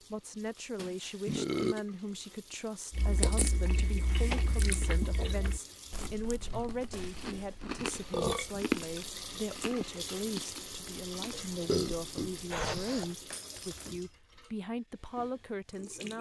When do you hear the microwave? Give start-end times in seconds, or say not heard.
not heard.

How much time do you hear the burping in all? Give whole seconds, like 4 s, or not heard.
4 s.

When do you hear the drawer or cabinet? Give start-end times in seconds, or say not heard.
not heard.